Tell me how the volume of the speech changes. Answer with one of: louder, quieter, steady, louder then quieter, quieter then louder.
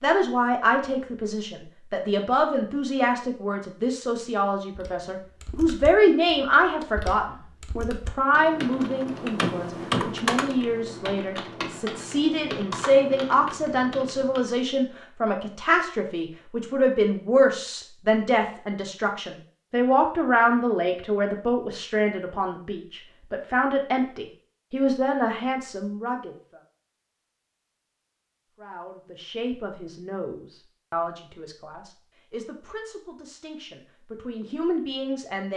quieter.